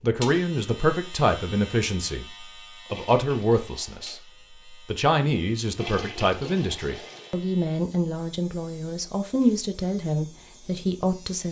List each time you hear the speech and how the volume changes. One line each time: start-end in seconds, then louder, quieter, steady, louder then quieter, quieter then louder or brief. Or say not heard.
0.0-11.4 steady.